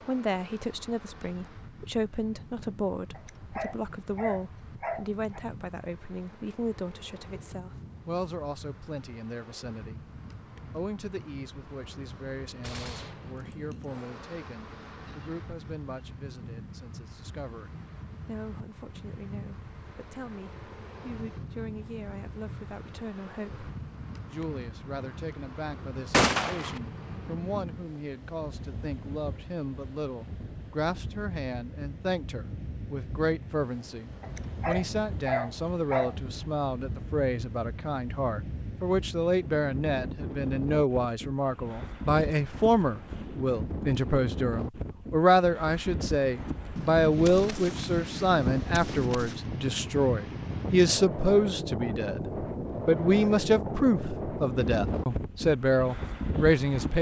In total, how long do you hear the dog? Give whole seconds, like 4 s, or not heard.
4 s.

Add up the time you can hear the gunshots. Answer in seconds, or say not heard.
5 s.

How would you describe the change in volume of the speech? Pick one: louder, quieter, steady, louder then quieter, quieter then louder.
quieter then louder.